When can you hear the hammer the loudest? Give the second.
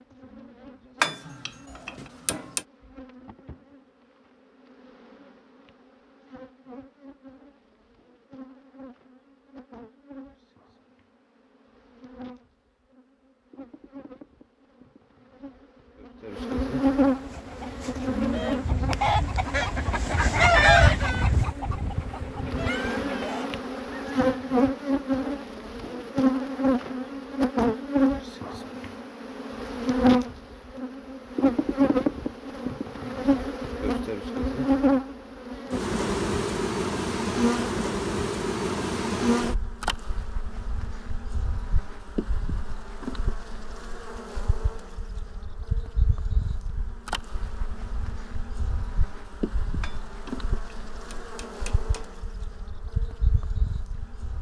1 s.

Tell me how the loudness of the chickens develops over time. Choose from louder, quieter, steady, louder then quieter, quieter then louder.
louder then quieter.